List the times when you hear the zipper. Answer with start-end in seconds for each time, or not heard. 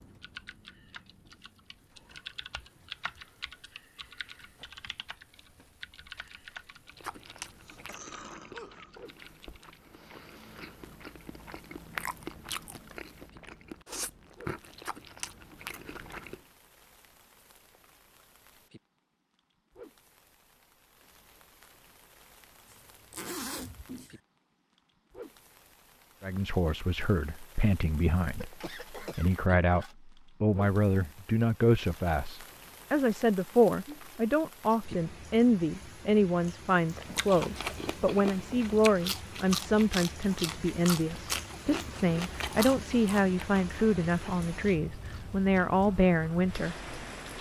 22.6-24.2.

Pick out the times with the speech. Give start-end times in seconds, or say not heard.
26.2-46.8.